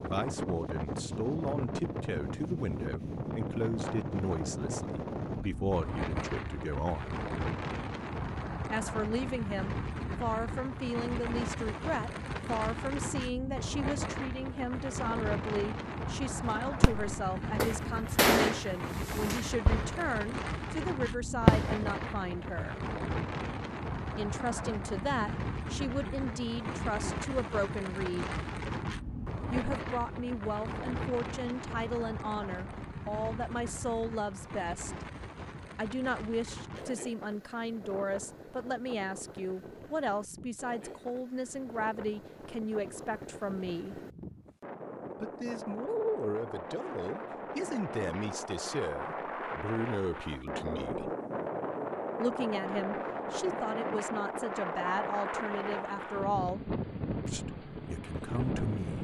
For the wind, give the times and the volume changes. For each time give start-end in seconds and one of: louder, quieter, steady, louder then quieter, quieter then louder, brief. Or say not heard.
0.0-58.9 quieter then louder.